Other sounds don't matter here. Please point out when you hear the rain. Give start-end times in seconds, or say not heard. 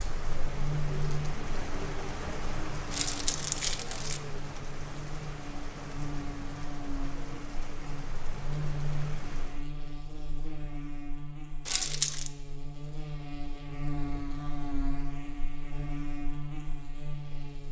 0.0-9.7.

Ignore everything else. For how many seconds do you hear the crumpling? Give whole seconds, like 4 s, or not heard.
2 s.